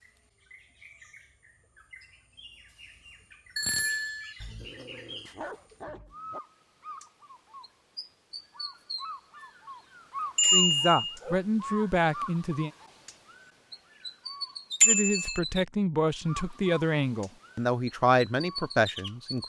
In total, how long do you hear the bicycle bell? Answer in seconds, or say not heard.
2 s.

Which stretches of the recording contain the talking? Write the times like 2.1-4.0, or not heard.
10.5-12.7, 14.8-19.4.